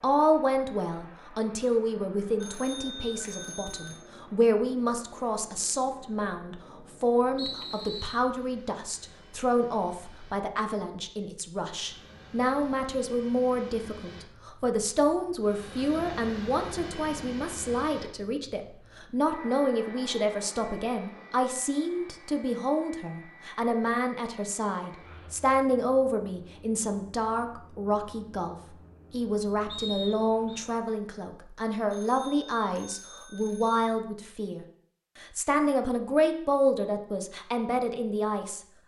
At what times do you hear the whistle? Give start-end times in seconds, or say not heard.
7.3-8.2, 29.6-30.6.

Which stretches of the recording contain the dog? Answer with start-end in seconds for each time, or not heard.
not heard.